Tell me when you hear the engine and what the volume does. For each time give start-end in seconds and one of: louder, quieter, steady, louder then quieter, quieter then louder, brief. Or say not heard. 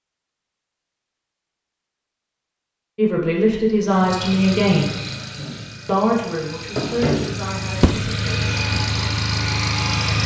3.9-10.2 quieter then louder.